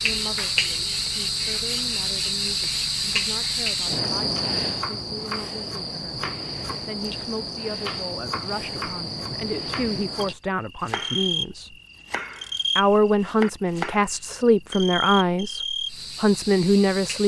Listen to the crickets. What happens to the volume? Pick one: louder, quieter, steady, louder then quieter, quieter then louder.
quieter.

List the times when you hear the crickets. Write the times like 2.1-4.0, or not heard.
0.0-17.2.